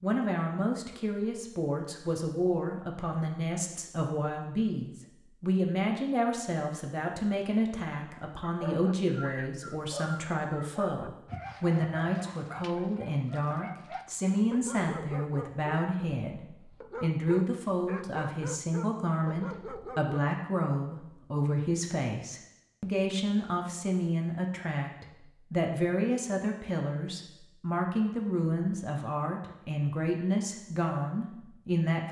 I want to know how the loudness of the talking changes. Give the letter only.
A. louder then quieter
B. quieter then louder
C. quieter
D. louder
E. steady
E.